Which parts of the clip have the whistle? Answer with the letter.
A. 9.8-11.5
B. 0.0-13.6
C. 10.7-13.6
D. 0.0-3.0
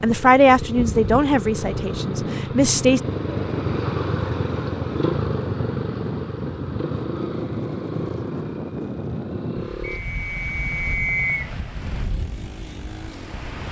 A.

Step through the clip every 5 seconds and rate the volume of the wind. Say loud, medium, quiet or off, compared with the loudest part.
loud, loud, medium.